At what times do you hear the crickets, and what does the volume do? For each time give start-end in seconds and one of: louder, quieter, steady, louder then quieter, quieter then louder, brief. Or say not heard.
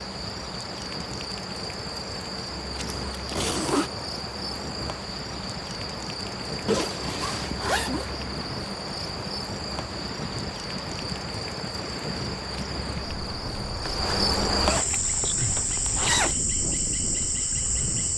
0.0-18.1 louder.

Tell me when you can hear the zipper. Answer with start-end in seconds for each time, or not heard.
2.8-3.9, 6.7-8.2, 13.8-16.4.